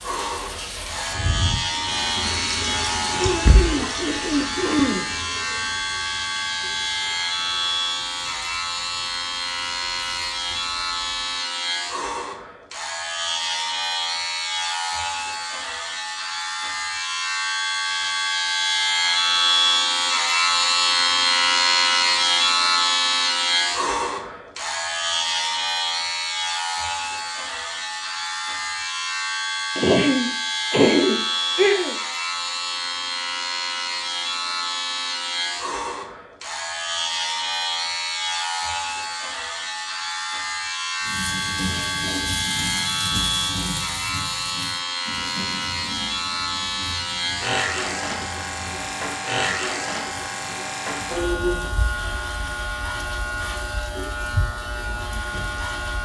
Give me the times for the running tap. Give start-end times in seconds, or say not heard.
0.0-11.4, 41.0-56.0.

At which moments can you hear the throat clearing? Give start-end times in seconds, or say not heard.
3.1-5.1, 29.8-31.9.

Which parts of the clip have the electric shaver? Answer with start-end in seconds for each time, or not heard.
0.0-56.0.